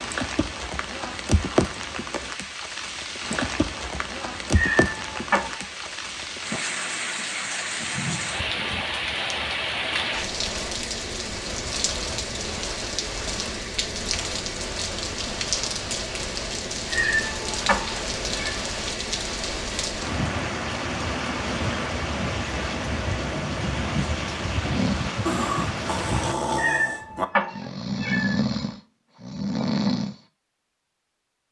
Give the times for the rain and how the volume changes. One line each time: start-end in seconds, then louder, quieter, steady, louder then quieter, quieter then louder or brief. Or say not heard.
0.0-26.4 steady.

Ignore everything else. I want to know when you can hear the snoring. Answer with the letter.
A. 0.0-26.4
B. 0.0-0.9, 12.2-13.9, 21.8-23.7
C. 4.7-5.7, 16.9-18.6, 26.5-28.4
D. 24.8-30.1
D.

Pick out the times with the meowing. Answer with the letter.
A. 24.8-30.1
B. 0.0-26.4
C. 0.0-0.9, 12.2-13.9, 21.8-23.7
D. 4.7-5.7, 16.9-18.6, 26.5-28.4
D.